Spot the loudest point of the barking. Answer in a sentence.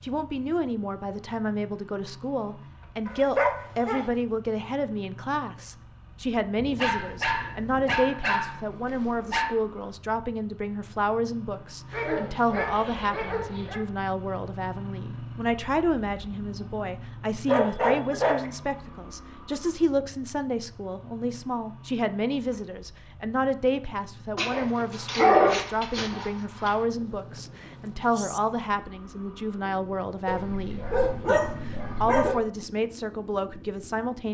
The volume of the barking peaks at 25 seconds.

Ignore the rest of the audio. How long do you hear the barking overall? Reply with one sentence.
You can hear the barking for 11 seconds altogether.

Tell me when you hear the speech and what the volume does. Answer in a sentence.
The speech can be heard from 0.0 to 34.2 s, at a steady volume.